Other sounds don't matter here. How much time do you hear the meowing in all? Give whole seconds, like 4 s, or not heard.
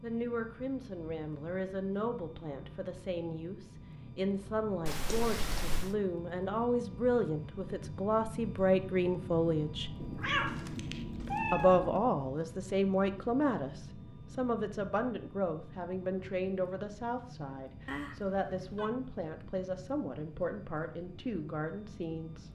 4 s.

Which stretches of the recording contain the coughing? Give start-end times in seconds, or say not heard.
not heard.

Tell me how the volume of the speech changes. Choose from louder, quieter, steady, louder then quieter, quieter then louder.
louder then quieter.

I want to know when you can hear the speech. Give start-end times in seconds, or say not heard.
0.0-9.9, 11.5-22.5.